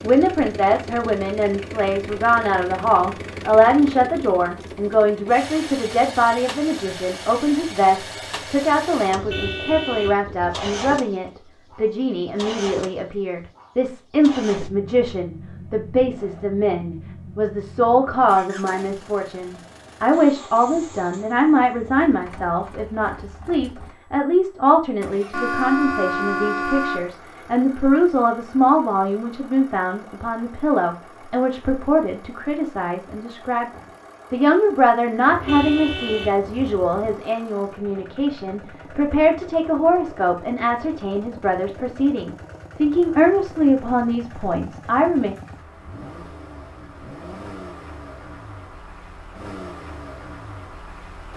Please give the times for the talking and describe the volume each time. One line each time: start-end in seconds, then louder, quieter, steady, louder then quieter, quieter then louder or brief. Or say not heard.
0.0-45.4 steady.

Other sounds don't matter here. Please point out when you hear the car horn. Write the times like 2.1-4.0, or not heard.
9.1-11.0, 25.3-27.1, 35.2-37.2.